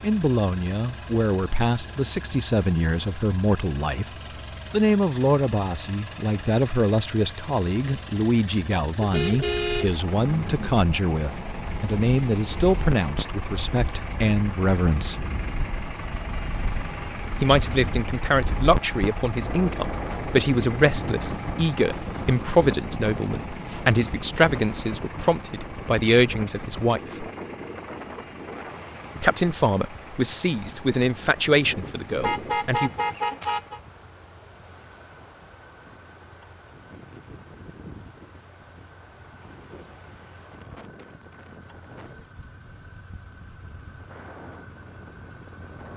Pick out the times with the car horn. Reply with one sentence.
You can hear the car horn from 9.0 to 10.7 s and from 32.2 to 33.8 s.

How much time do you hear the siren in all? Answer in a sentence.
You can't hear the siren here.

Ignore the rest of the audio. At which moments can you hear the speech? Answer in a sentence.
You can hear the speech from 0.0 to 15.2 s, from 17.4 to 27.0 s and from 29.2 to 32.9 s.